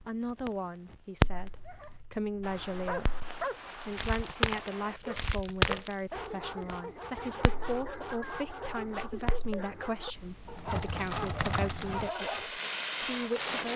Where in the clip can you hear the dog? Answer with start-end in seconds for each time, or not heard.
1.3-12.5.